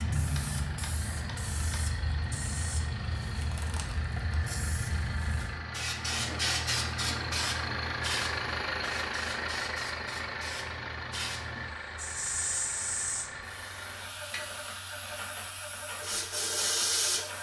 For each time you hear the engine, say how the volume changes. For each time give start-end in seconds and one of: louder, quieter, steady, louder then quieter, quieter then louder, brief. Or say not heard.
0.0-17.3 louder then quieter.